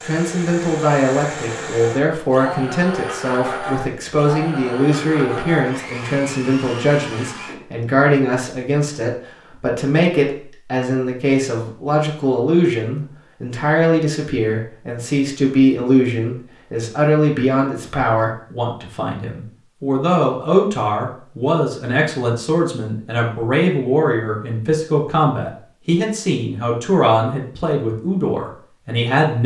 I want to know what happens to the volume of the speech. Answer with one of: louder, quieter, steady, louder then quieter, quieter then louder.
steady.